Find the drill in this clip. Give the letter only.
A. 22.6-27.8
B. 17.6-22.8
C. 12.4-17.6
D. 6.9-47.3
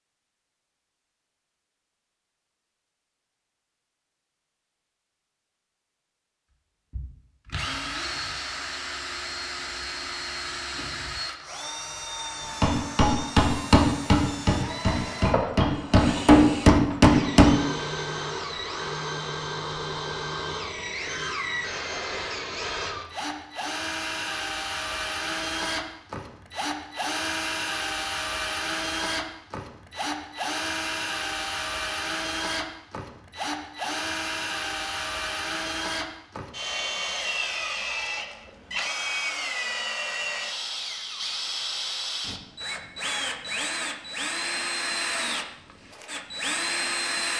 D.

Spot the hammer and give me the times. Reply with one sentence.
The hammer can be heard from 12.4 to 17.6 s.